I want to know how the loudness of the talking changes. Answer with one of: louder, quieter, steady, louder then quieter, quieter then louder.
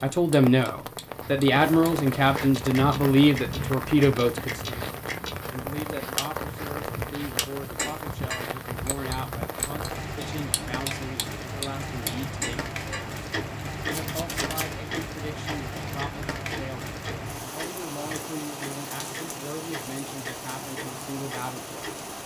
quieter.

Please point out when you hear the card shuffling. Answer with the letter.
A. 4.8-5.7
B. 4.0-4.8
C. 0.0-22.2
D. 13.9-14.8
D.